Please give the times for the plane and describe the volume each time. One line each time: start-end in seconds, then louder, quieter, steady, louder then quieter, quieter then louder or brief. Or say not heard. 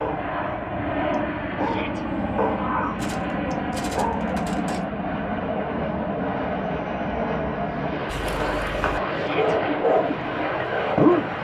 0.0-11.4 steady.